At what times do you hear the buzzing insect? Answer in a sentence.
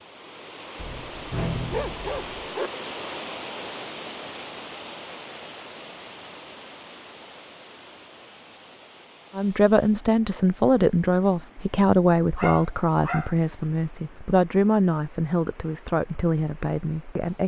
You can't hear the buzzing insect here.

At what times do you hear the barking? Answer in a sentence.
The barking can be heard from 0.8 to 2.7 s and from 12.3 to 13.4 s.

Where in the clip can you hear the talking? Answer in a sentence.
You can hear the talking from 9.3 to 17.4 s.